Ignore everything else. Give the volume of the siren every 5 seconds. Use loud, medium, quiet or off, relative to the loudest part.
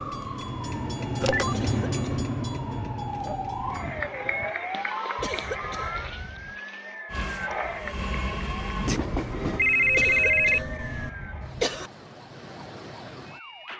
loud, loud, medium.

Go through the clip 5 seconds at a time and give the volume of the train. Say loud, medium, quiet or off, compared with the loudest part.
loud, loud, off.